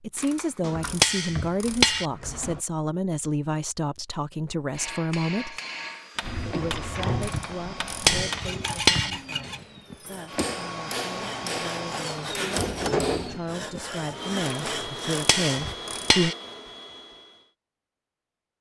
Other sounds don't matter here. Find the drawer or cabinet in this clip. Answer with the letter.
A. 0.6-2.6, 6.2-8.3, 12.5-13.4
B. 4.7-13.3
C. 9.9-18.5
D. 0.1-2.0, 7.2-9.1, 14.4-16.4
A.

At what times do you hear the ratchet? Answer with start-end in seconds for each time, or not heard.
0.1-2.0, 7.2-9.1, 14.4-16.4.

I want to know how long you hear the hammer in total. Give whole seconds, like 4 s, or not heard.
9 s.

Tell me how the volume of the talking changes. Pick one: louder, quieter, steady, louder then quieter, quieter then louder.
quieter then louder.